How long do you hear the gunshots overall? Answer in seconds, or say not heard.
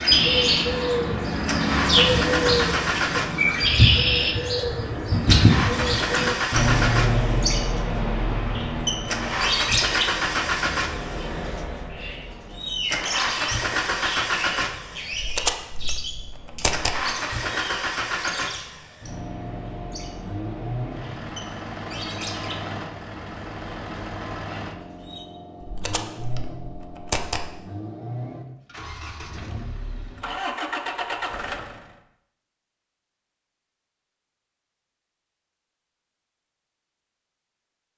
4 s.